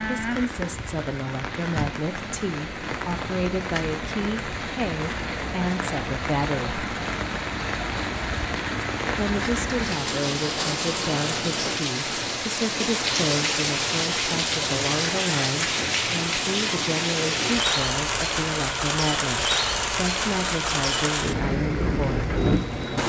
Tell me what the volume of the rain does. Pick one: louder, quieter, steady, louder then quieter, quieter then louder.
louder.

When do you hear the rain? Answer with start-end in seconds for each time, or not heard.
0.0-23.0.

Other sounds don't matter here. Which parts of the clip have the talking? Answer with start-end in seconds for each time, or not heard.
0.0-6.8, 9.1-22.3.